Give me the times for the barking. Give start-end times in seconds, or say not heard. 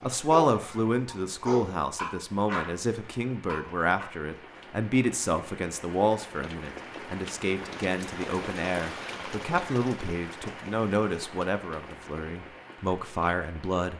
0.0-4.0.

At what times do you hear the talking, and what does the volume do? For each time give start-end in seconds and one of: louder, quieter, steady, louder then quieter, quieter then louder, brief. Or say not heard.
0.0-13.9 steady.